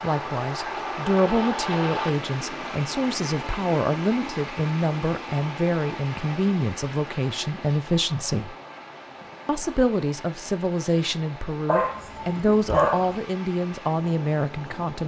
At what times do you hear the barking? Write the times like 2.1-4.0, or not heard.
11.7-13.2.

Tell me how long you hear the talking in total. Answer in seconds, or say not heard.
14 s.